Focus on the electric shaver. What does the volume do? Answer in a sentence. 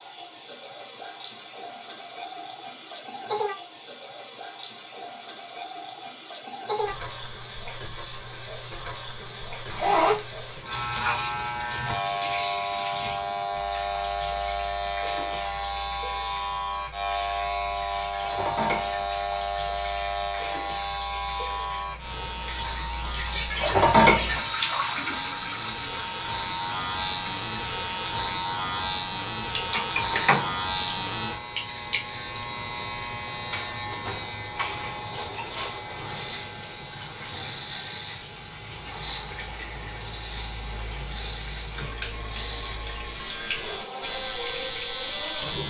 The volume of the electric shaver stays about the same.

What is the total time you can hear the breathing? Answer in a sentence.
The breathing can't be heard in this clip.